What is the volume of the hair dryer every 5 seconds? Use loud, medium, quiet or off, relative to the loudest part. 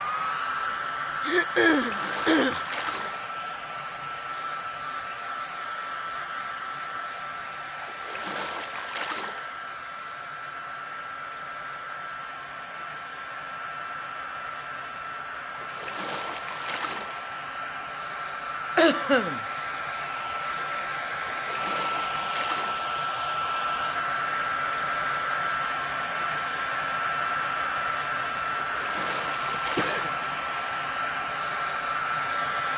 loud, medium, medium, medium, loud, loud, loud.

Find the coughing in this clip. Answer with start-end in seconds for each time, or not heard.
1.2-2.6, 18.8-19.4, 29.4-30.1.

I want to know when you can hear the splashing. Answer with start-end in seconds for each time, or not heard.
1.7-3.2, 7.8-9.5, 15.5-17.2, 21.2-22.9, 28.6-30.1.